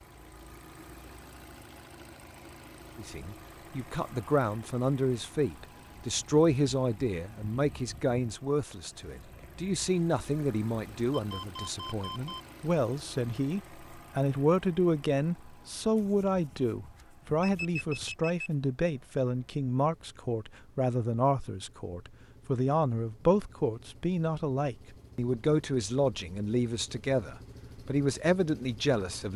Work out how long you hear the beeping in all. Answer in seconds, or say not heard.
4 s.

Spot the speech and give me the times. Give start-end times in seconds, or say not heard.
3.0-29.3.